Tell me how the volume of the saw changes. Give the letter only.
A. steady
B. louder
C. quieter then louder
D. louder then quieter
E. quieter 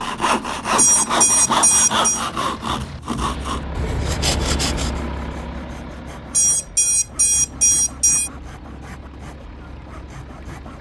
E.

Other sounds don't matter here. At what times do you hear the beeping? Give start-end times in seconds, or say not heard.
0.8-2.2, 6.3-8.3.